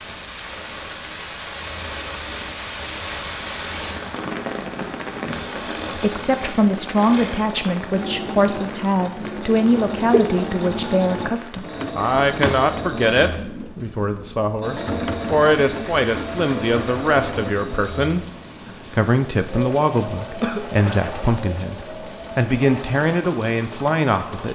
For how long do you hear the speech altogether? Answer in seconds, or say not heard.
18 s.